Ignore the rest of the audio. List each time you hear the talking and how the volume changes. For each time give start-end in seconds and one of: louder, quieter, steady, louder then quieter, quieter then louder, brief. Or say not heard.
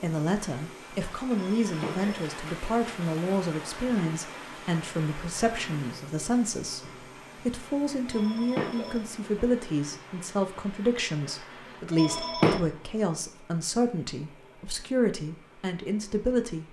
0.0-16.6 steady.